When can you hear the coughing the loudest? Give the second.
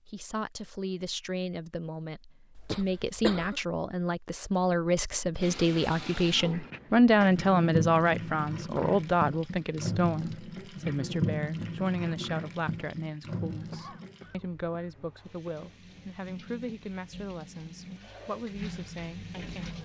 3 s.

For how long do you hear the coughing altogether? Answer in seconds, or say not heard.
3 s.